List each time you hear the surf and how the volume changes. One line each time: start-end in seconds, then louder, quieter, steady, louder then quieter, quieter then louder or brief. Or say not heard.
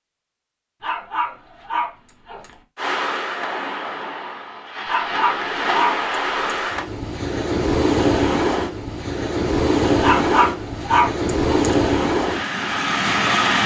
2.8-13.6 louder.